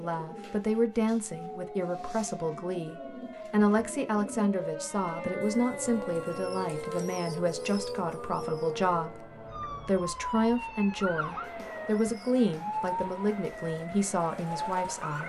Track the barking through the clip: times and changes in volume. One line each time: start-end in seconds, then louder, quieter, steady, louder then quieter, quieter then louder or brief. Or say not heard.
not heard.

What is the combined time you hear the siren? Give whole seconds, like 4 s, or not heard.
15 s.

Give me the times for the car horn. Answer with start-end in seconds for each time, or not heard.
not heard.